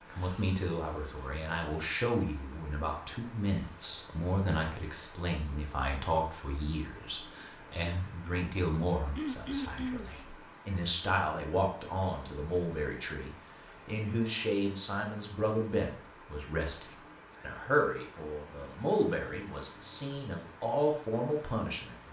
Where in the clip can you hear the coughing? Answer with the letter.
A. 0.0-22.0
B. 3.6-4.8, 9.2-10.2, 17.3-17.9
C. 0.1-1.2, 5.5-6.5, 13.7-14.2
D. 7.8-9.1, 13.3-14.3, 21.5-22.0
B.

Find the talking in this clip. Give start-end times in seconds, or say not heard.
0.0-22.0.